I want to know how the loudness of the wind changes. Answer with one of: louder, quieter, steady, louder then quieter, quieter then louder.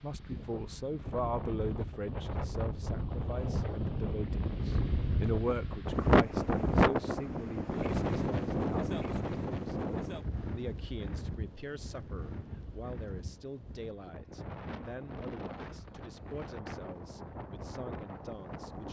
louder then quieter.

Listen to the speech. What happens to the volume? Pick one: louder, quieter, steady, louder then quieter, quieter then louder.
quieter.